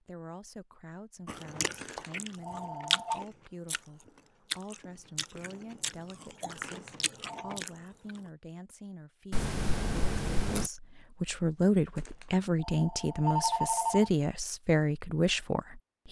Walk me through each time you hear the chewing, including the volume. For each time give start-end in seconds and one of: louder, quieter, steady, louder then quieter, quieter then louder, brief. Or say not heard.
1.2-8.3 louder then quieter.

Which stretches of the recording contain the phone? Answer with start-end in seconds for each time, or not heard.
1.8-3.2, 6.6-7.6, 11.9-14.1.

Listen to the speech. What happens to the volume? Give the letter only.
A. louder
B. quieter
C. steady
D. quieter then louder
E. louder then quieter
A.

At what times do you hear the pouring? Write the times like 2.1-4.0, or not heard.
9.3-10.7.